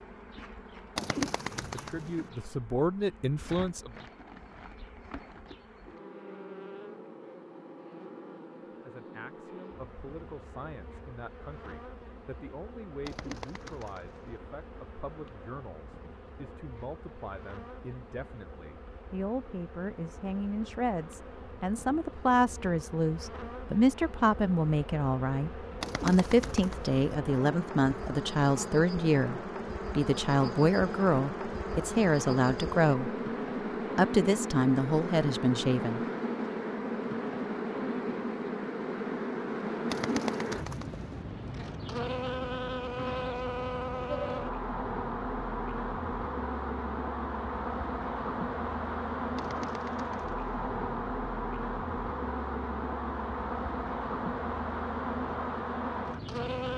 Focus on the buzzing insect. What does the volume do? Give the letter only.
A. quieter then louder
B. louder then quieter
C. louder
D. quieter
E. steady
C.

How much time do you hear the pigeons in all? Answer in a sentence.
You can hear the pigeons for 6 seconds altogether.